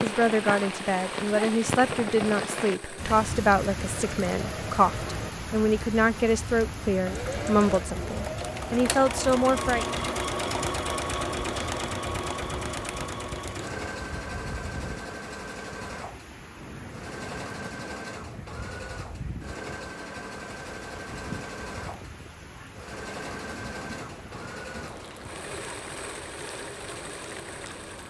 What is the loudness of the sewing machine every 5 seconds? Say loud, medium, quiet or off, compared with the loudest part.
medium, loud, loud, medium, medium, medium.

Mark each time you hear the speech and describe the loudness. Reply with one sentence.
The speech can be heard from 0.0 to 9.8 s, at a steady volume.